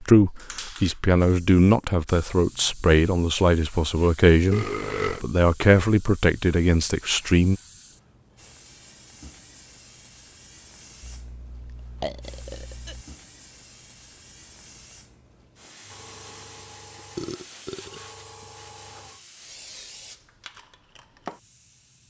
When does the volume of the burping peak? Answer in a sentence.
The volume of the burping peaks at 5 seconds.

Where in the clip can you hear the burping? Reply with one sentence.
The burping can be heard from 4.5 to 5.2 s, from 11.0 to 13.1 s and from 16.9 to 18.4 s.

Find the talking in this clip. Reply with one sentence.
You can hear the talking from 0.0 to 7.5 s.